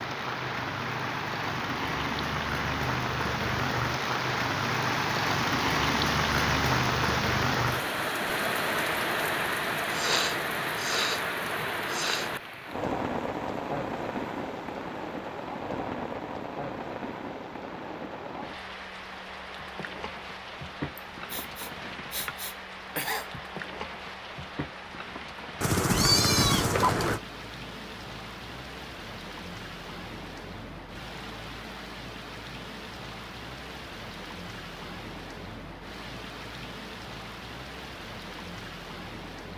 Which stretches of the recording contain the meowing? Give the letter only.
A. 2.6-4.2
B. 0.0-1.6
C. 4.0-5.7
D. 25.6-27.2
D.